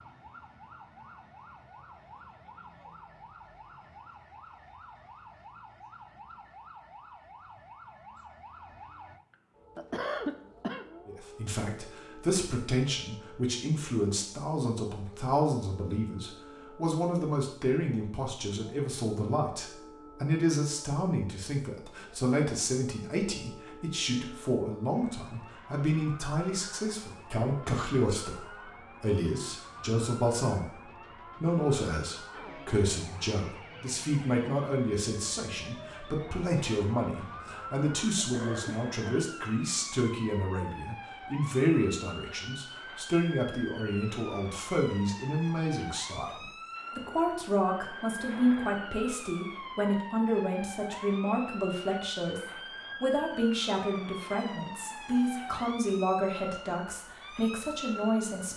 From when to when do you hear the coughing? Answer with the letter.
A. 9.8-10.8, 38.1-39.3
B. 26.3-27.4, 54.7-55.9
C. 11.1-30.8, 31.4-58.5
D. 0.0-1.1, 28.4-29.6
A.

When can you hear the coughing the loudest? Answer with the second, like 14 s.
10 s.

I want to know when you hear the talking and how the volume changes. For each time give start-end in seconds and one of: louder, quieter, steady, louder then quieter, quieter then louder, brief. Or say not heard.
11.1-30.8 steady
31.4-58.5 steady.